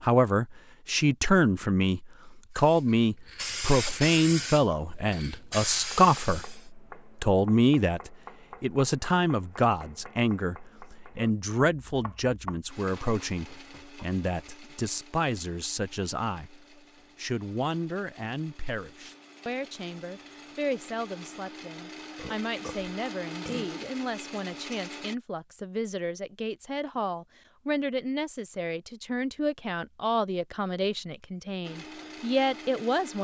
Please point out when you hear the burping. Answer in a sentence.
The burping can be heard from 22.1 to 23.9 s.